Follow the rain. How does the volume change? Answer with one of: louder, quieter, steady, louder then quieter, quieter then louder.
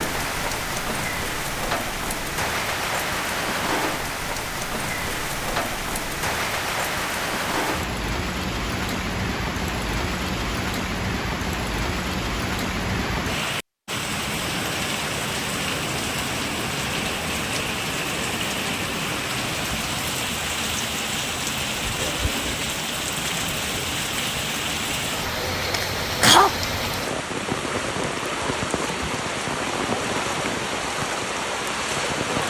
steady.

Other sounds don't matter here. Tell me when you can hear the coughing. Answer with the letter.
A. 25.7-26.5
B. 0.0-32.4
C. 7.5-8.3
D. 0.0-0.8
A.